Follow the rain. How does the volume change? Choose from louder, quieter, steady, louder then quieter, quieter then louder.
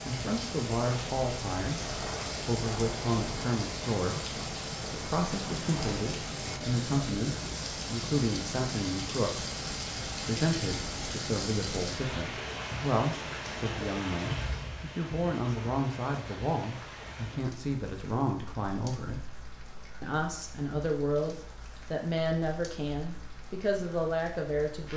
quieter.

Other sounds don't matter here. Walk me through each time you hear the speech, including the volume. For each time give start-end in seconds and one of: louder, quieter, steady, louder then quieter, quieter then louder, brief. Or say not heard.
0.0-19.2 steady
20.0-24.9 steady.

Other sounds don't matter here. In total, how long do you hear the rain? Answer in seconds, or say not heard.
25 s.